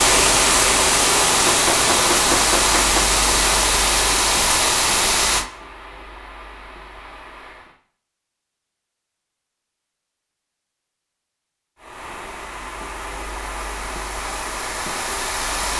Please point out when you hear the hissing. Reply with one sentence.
The hissing can be heard from 0.0 to 7.8 s and from 11.8 to 15.7 s.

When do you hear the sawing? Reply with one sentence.
You can't hear the sawing here.